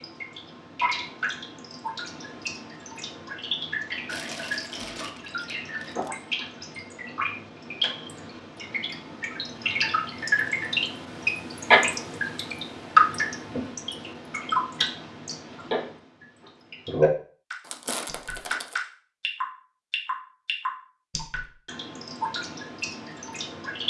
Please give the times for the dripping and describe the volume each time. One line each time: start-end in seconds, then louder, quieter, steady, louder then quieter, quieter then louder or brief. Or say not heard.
0.0-23.8 louder then quieter.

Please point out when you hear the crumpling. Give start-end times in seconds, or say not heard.
4.0-6.1, 17.6-18.8.